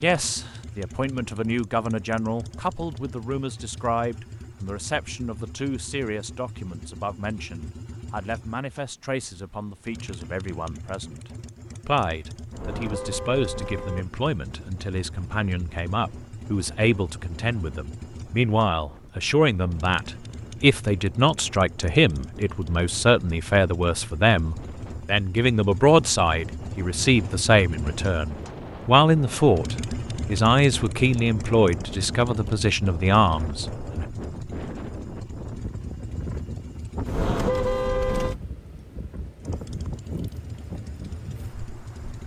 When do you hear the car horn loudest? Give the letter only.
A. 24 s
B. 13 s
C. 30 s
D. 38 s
D.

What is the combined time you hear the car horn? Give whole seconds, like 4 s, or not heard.
3 s.